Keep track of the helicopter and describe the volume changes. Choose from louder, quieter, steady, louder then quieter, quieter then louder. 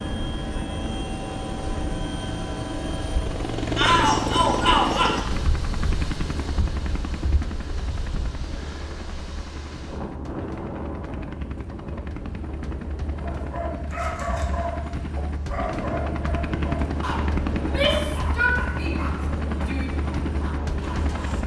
quieter then louder.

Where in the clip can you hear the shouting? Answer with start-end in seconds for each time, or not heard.
3.8-5.2, 17.6-19.9.